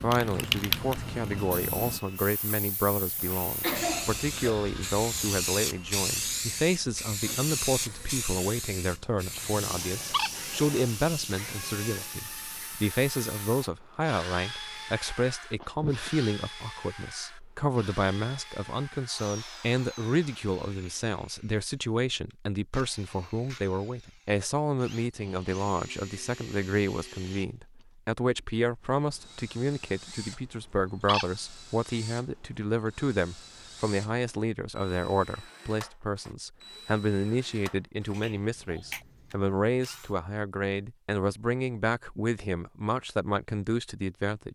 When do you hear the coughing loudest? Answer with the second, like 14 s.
4 s.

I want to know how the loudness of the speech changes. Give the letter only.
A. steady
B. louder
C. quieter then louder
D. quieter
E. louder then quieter
A.